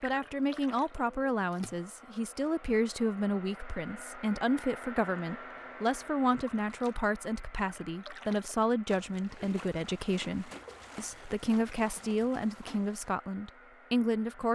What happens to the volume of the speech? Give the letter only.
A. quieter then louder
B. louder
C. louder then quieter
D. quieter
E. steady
E.